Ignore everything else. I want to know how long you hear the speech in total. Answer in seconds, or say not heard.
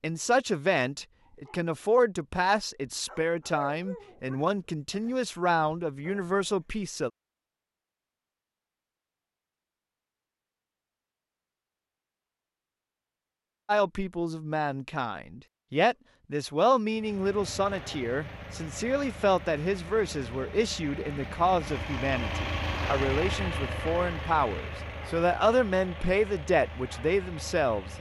21 s.